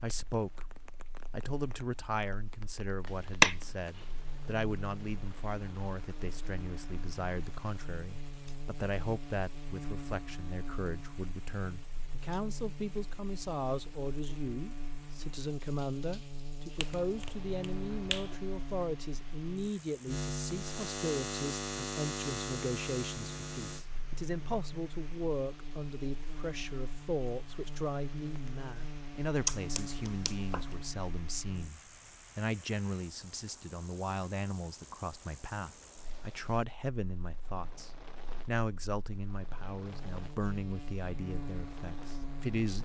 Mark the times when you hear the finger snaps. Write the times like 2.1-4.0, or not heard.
3.0-3.5, 16.8-18.4, 29.4-30.8.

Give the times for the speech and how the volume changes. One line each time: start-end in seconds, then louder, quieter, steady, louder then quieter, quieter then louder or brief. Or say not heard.
0.0-0.7 brief
1.3-42.8 steady.